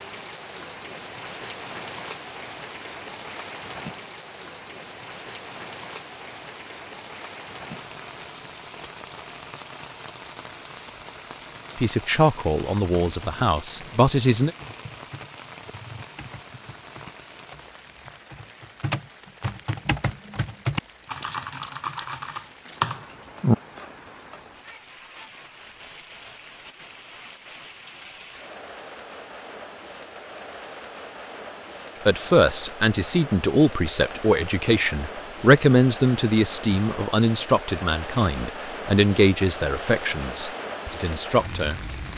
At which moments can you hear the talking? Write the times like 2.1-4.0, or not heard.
11.8-14.5, 32.0-42.1.